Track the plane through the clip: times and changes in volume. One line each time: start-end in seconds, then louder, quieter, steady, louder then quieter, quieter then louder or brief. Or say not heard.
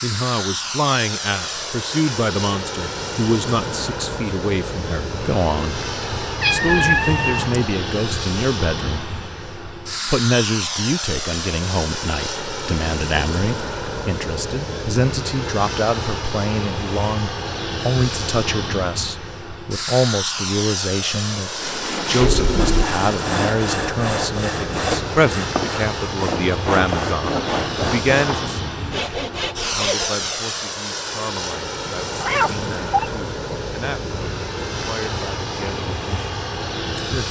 0.0-37.2 steady.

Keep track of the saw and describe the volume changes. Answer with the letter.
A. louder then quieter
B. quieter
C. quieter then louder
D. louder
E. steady
E.